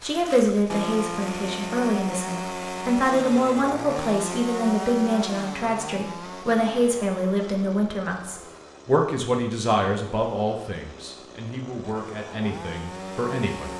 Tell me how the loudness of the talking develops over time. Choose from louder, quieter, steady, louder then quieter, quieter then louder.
quieter.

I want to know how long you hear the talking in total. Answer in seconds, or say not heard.
14 s.